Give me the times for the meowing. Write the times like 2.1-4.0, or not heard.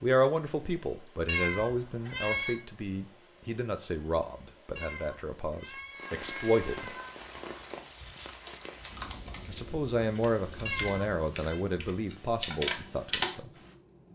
1.2-2.6, 4.8-7.2, 10.7-11.6.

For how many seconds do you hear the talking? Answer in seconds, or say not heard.
11 s.